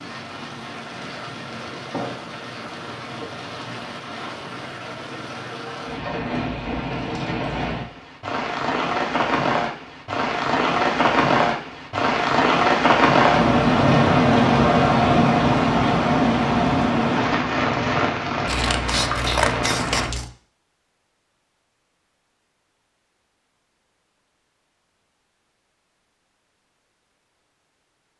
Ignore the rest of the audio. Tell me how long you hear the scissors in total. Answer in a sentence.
The scissors can be heard for 2 seconds in total.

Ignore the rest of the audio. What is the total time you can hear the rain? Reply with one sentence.
You can hear the rain for 20 seconds altogether.